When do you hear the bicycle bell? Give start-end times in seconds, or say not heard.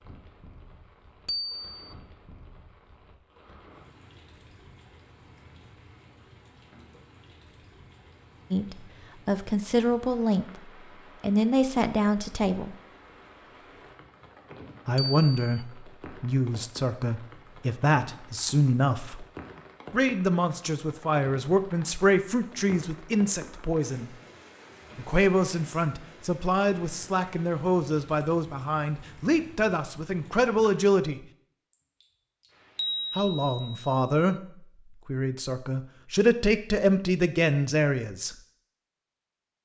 1.2-1.9, 14.9-15.7, 32.8-34.3.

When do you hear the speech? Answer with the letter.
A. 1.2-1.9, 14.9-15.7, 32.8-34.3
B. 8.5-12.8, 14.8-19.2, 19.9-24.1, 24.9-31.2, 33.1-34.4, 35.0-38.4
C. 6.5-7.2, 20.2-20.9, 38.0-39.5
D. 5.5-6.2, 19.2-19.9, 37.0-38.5
B.